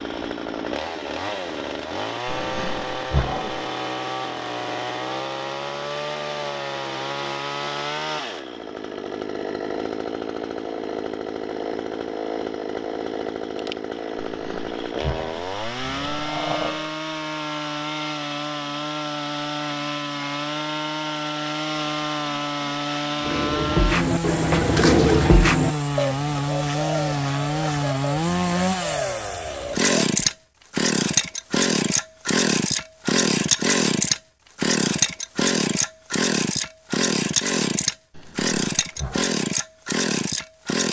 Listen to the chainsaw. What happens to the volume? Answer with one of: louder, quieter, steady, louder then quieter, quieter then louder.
louder.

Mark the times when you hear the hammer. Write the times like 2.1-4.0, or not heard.
not heard.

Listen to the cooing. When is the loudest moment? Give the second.
25 s.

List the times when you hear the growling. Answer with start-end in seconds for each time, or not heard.
2.2-3.6, 14.2-16.9, 38.1-39.4.